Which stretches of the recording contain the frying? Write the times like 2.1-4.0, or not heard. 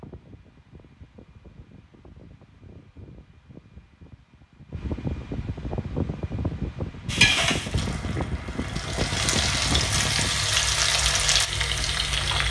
7.0-12.4.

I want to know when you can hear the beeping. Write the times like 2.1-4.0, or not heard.
not heard.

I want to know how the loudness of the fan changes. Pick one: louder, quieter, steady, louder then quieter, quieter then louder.
louder.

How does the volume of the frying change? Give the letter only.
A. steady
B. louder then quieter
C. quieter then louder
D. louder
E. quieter
D.